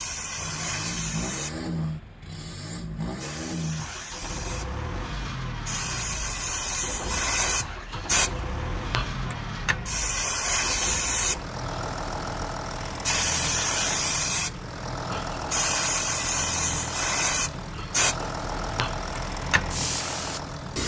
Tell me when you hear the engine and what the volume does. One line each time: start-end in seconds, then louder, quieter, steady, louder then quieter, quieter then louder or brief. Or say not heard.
0.0-20.8 steady.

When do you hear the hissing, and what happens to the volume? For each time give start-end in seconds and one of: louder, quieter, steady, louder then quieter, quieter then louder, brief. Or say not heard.
0.0-20.8 louder.